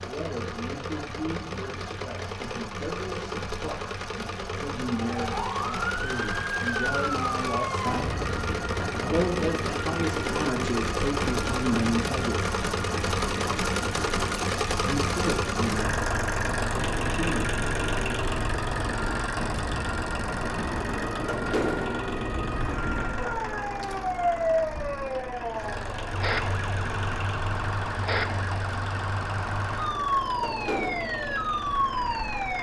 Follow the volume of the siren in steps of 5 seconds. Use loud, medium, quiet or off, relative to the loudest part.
off, loud, medium, medium, loud, loud, loud.